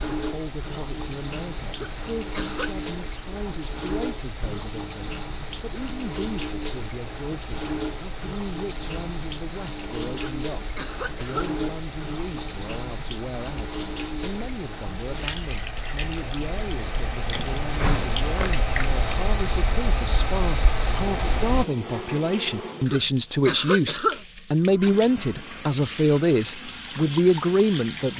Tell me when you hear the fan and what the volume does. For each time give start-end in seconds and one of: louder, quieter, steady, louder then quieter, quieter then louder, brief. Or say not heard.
0.2-21.6 louder.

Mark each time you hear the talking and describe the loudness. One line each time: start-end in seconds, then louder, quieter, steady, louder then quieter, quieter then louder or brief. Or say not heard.
0.1-28.1 louder.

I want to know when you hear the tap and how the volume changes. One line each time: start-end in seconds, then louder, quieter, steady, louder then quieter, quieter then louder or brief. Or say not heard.
0.0-28.1 steady.